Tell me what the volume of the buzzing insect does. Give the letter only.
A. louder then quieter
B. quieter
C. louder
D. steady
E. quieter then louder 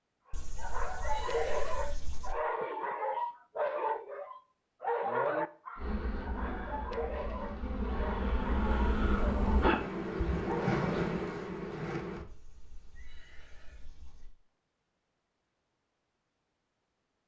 C.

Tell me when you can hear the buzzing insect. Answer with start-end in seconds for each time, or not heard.
5.8-12.2.